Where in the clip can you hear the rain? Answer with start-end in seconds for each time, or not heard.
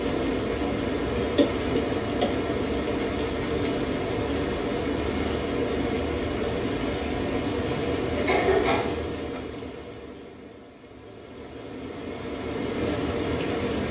0.0-13.8.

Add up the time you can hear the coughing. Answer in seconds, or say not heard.
3 s.